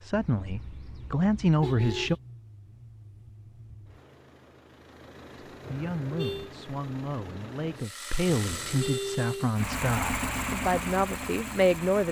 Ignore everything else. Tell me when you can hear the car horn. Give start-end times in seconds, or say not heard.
0.1-2.2, 5.6-6.5, 8.3-9.6.